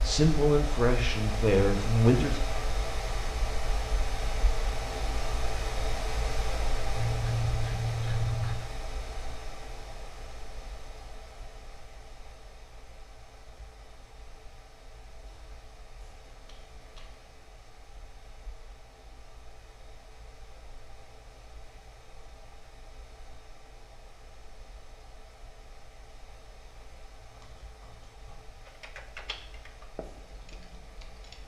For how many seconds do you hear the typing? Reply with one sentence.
You can hear the typing for 3 seconds altogether.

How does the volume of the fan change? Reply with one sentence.
The volume of the fan goes down.